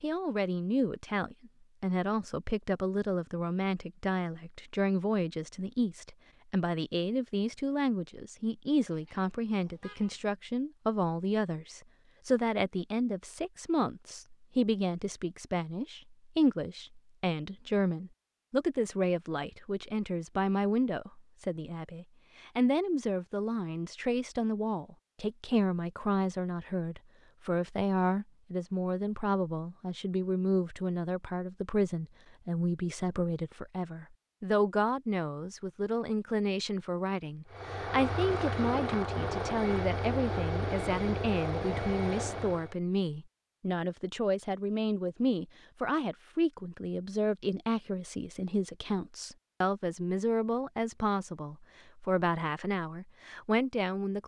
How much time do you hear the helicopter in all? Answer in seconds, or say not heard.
5 s.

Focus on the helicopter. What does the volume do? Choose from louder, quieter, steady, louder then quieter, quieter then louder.
steady.